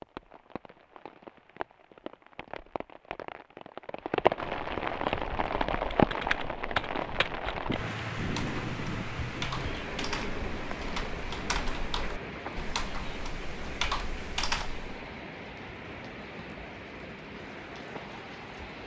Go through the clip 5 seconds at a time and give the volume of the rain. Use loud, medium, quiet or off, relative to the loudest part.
loud, loud, medium, medium.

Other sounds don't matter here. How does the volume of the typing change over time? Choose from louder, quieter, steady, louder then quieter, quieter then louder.
quieter then louder.